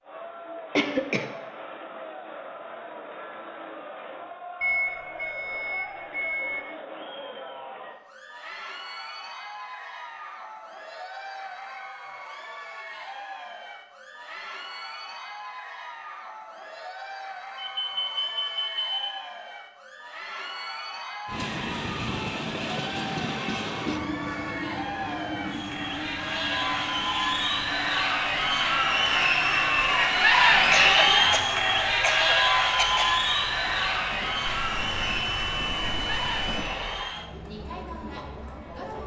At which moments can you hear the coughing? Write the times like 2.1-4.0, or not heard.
0.7-1.3, 30.6-33.1.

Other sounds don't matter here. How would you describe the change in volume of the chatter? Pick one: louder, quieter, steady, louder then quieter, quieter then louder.
louder.